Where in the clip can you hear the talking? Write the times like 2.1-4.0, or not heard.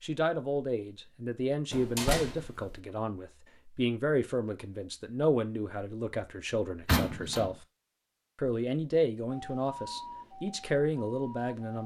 0.0-7.5, 8.3-11.8.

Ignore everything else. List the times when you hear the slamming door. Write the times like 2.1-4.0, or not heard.
1.7-2.8, 6.8-7.5.